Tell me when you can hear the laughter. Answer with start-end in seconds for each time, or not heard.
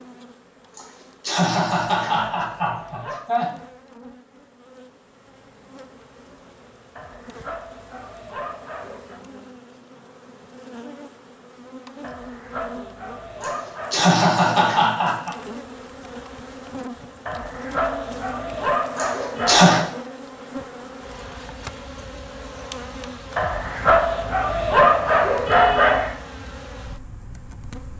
0.8-3.5, 13.4-15.3, 18.9-19.9.